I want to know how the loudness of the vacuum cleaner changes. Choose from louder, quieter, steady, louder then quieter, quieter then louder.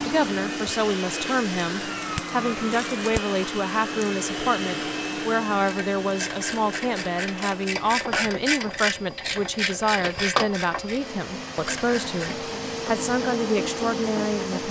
quieter then louder.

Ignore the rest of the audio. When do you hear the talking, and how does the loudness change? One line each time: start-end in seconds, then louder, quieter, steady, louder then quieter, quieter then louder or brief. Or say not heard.
0.1-14.6 steady.